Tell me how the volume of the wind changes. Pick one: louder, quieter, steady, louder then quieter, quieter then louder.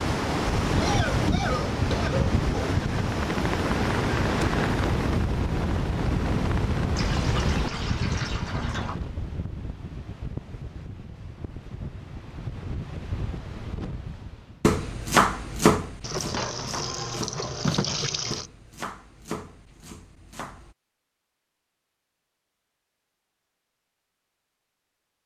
quieter.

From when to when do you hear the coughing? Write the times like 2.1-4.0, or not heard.
0.7-2.8.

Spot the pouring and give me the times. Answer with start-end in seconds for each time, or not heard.
7.0-8.9, 16.0-18.5.